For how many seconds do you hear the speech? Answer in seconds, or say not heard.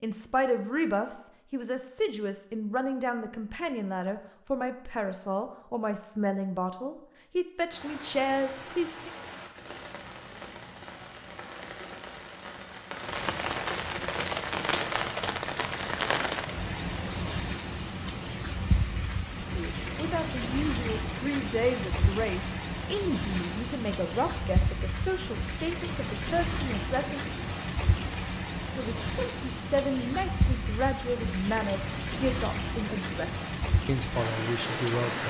23 s.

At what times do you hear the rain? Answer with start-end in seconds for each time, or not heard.
7.7-35.2.